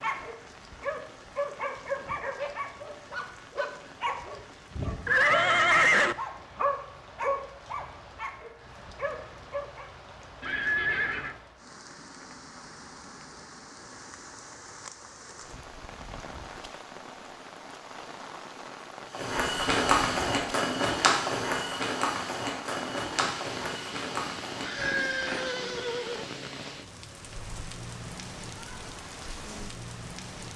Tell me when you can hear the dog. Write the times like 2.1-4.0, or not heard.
0.0-9.8.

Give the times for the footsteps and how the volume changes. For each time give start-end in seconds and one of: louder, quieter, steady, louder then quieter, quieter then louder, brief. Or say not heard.
19.1-25.6 quieter.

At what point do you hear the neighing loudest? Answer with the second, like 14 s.
6 s.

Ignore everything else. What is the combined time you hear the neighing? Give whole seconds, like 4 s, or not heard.
4 s.